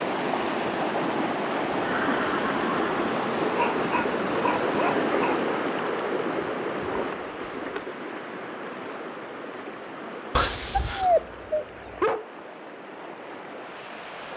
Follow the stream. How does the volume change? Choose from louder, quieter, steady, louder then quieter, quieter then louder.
quieter.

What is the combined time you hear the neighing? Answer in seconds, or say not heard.
3 s.